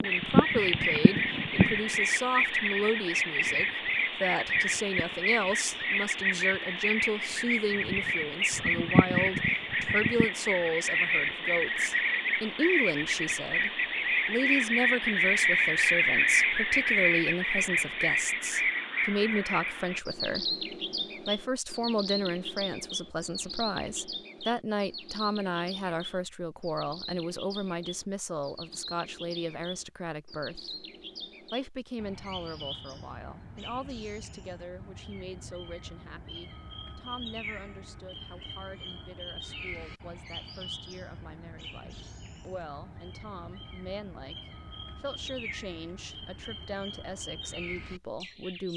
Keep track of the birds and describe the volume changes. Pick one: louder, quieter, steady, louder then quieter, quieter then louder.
quieter.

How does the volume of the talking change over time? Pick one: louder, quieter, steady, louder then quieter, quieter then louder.
quieter.